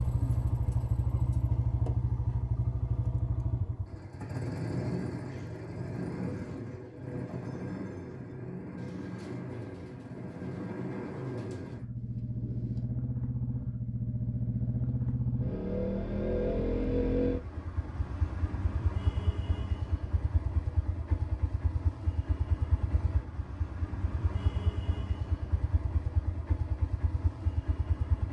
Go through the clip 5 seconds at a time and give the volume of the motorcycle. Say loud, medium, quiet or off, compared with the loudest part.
loud, medium, loud, loud, medium, medium.